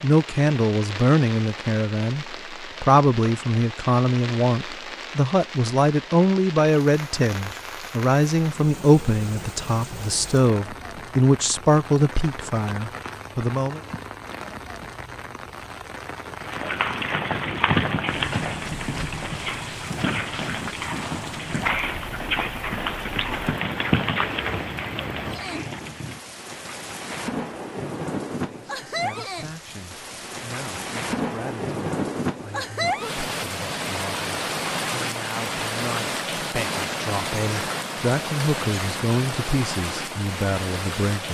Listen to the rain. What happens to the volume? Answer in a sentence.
The volume of the rain goes up.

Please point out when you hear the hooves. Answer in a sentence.
The hooves can be heard from 16.4 to 26.2 s.